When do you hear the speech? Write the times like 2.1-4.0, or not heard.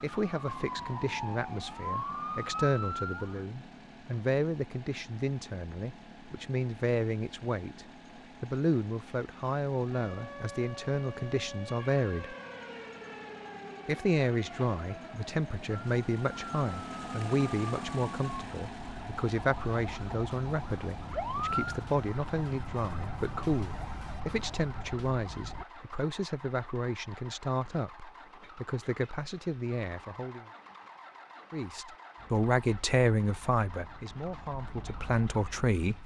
0.0-12.3, 13.8-30.4, 31.5-36.0.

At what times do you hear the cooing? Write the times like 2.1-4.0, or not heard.
not heard.